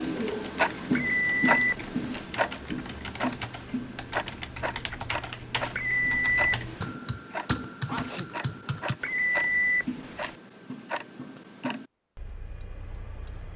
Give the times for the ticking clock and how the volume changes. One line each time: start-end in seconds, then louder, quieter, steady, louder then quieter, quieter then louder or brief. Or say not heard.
0.0-13.5 quieter.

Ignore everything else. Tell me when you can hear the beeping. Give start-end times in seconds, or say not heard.
0.9-2.3, 5.8-7.0, 9.0-10.3.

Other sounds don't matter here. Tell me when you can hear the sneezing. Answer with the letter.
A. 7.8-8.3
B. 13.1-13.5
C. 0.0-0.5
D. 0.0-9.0
A.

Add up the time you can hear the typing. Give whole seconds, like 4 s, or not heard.
9 s.